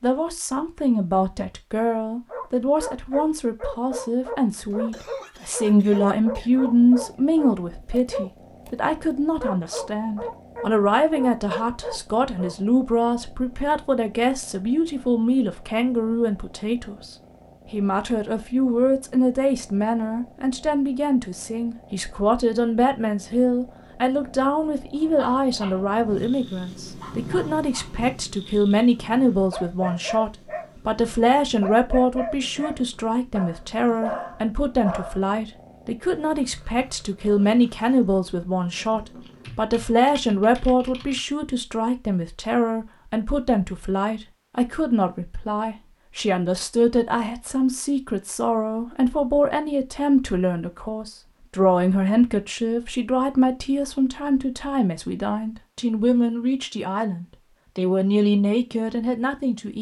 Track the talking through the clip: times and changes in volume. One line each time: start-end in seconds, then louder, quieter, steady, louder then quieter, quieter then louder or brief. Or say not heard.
0.0-59.7 steady.